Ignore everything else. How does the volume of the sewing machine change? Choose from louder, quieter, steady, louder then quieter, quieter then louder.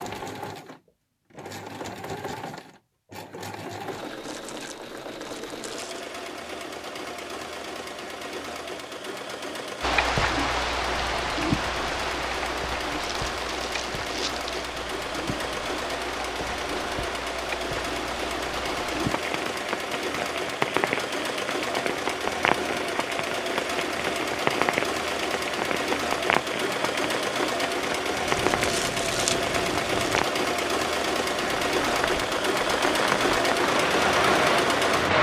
louder.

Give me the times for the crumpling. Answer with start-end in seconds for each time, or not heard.
4.2-6.0, 13.1-14.7, 28.2-30.2.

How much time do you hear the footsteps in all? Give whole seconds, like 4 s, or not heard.
not heard.